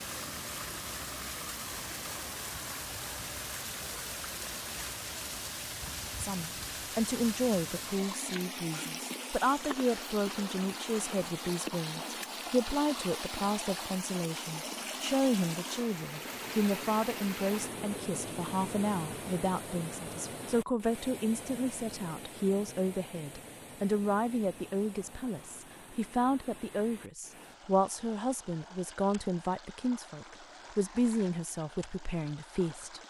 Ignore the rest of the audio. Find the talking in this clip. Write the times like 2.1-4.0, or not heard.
6.2-33.0.